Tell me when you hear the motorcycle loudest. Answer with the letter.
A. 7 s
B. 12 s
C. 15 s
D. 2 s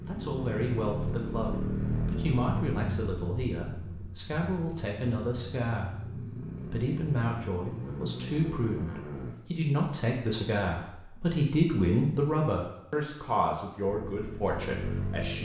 D.